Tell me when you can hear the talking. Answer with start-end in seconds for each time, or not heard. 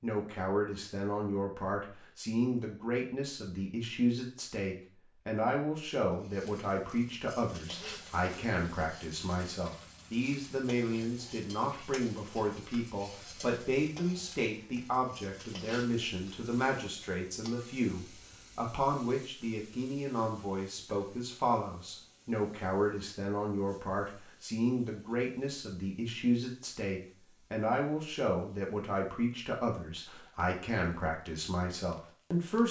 0.0-32.6.